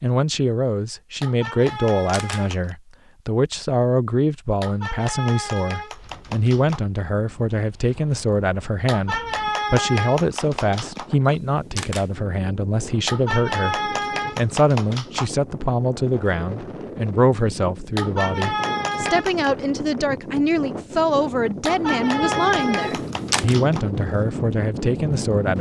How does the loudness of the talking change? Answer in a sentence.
The volume of the talking stays about the same.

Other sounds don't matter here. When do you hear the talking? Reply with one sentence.
You can hear the talking from 0.0 to 25.5 s.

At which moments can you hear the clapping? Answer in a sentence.
The clapping can be heard from 1.2 to 2.8 s, from 4.6 to 6.8 s, from 8.8 to 11.1 s, from 13.1 to 15.3 s, from 17.9 to 19.5 s and from 21.6 to 23.9 s.